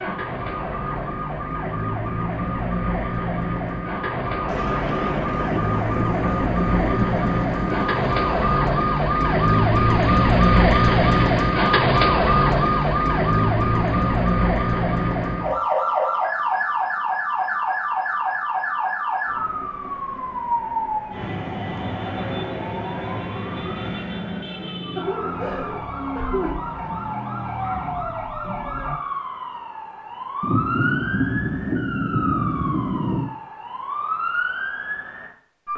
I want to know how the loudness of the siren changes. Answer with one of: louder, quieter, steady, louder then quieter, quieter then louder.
louder then quieter.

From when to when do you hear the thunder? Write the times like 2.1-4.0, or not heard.
4.5-8.7, 30.4-33.3.